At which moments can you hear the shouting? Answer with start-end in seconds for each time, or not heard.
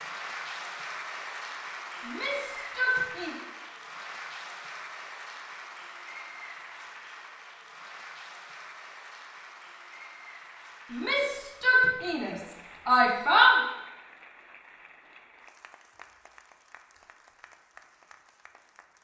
2.0-3.4, 10.9-13.6.